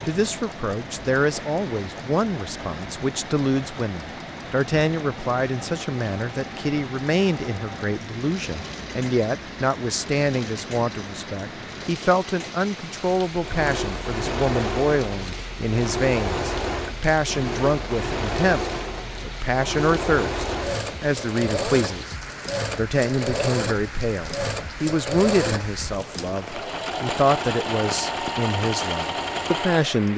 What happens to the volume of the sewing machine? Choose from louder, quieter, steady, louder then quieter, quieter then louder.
louder.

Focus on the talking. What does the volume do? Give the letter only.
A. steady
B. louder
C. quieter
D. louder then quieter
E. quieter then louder
A.